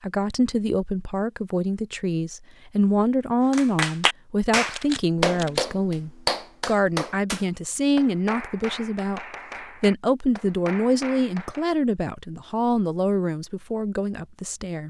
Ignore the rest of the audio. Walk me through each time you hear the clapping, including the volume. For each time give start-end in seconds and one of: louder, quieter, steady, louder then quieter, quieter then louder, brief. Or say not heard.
3.5-11.7 quieter.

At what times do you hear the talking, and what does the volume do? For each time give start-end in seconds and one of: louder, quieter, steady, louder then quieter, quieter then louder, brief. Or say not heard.
0.0-14.8 steady.